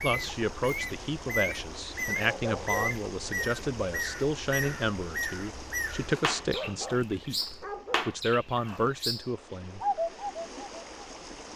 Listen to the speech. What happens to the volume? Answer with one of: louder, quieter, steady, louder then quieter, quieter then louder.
steady.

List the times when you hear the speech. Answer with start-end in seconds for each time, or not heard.
0.0-9.8.